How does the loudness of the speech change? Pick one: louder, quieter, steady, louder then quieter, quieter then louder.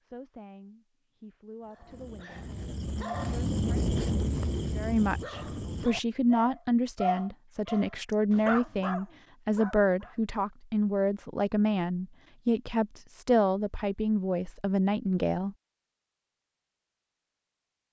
louder.